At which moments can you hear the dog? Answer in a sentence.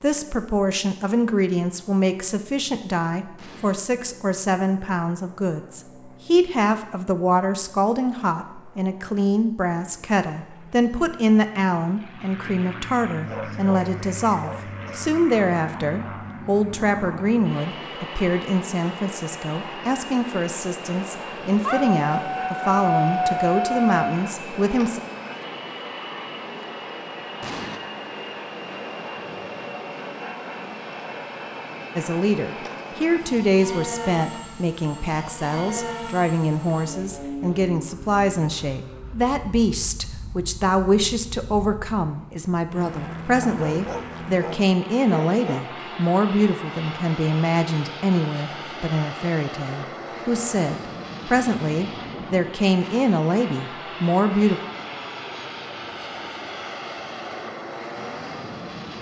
The dog can be heard from 13.2 to 14.9 s, from 21.6 to 23.9 s and from 43.4 to 45.8 s.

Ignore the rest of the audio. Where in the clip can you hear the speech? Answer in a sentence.
The speech can be heard from 0.0 to 25.0 s and from 31.9 to 54.6 s.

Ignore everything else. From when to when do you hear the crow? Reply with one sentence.
The crow can't be heard in this clip.